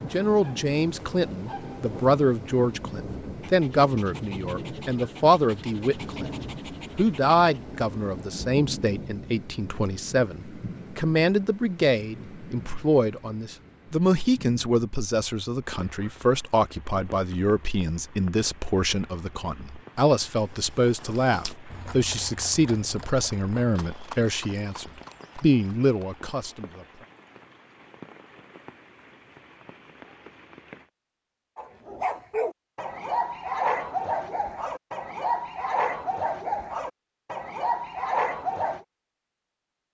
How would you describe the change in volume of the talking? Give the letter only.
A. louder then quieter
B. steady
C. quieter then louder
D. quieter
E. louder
B.